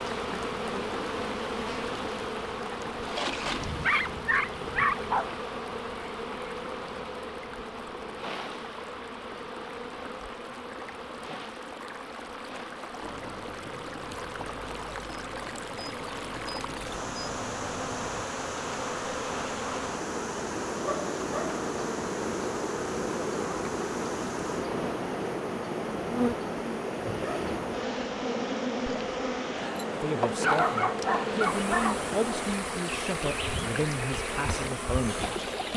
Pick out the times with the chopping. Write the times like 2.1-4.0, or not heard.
not heard.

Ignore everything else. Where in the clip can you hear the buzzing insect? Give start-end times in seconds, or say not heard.
0.0-35.7.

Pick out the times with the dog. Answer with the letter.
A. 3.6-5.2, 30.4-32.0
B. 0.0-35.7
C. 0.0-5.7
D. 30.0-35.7
A.